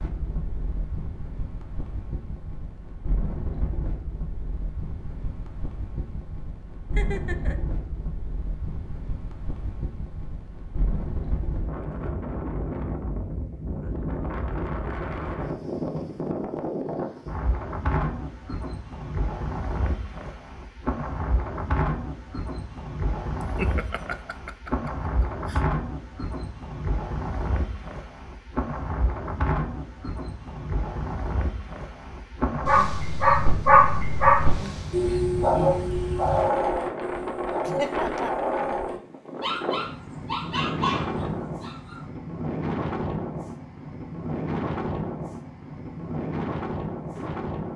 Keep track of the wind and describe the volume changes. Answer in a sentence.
The volume of the wind goes up.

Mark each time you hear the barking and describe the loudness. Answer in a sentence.
The barking can be heard from 32.6 to 42.0 s, getting quieter.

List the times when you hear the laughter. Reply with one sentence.
The laughter can be heard from 7.0 to 7.6 s, from 23.4 to 25.6 s and from 37.6 to 38.4 s.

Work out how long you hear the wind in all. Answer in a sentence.
The wind can be heard for 48 seconds in total.